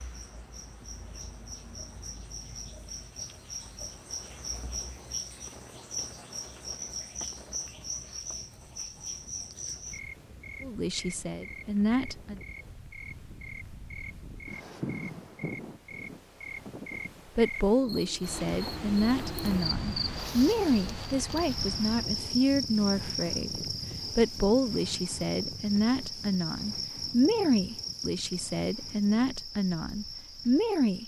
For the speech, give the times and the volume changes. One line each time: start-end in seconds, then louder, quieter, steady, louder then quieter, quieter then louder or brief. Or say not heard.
10.6-12.4 brief
17.4-31.0 steady.